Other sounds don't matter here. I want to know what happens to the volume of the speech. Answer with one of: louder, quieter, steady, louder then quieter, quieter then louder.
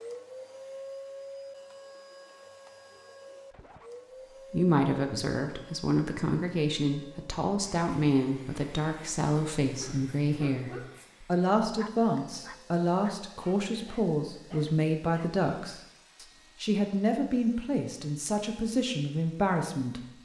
steady.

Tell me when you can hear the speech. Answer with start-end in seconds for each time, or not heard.
4.5-20.0.